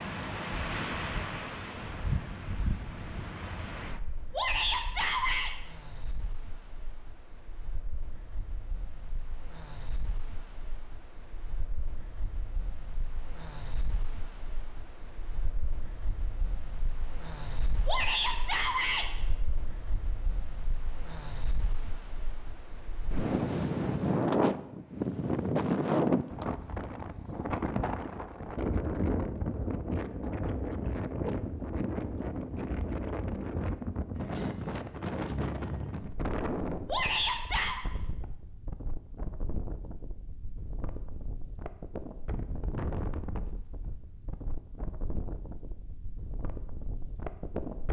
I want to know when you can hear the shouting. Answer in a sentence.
You can hear the shouting from 4.3 to 5.5 s, from 17.9 to 19.1 s and from 36.9 to 37.8 s.